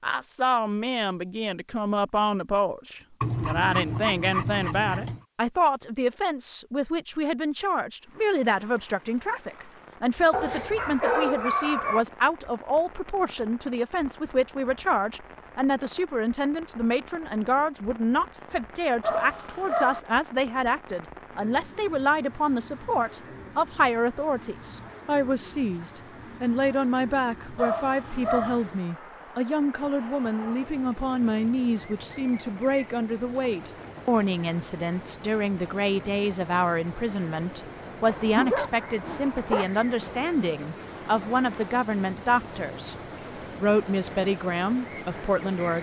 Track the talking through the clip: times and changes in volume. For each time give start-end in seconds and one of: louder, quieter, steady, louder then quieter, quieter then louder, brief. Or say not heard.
0.0-43.0 steady
43.5-45.7 brief.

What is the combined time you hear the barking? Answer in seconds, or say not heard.
7 s.